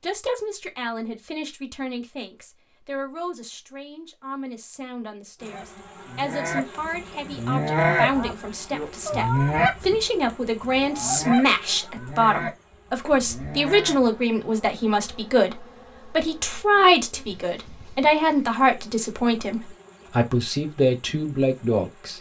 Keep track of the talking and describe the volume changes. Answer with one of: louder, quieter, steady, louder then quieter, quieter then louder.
louder.